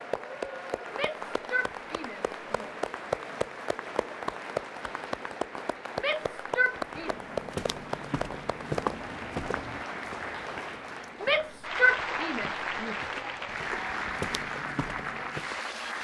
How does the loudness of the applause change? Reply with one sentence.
The volume of the applause stays about the same.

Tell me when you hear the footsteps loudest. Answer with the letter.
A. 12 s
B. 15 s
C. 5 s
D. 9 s
D.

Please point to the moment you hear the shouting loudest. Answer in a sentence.
The loudest moment of the shouting is at 12 seconds.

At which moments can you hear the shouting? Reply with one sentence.
The shouting can be heard from 0.9 to 2.8 s, from 6.0 to 7.1 s and from 11.2 to 13.1 s.